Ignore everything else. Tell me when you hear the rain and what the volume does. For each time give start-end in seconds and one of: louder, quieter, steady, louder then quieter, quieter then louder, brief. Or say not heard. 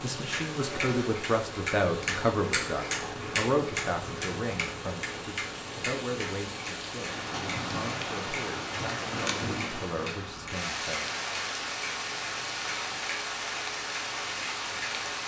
0.0-15.2 louder.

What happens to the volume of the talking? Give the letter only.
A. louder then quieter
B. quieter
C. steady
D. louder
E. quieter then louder
B.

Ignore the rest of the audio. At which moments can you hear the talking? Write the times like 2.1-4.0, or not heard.
0.0-11.1.